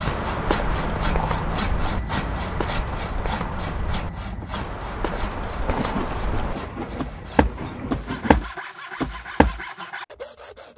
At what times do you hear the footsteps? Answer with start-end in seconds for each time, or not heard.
0.1-9.6.